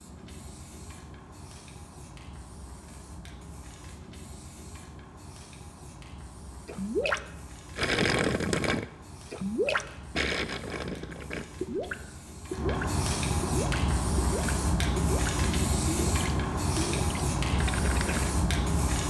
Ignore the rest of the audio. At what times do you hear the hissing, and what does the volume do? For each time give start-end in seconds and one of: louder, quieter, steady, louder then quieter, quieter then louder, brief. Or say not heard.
0.0-19.0 louder.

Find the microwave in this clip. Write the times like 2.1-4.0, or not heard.
not heard.